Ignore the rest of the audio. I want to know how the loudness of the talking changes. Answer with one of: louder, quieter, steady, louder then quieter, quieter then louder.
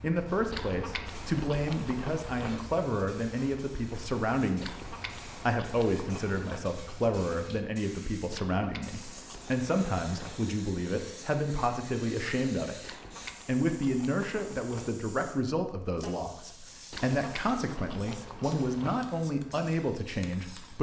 steady.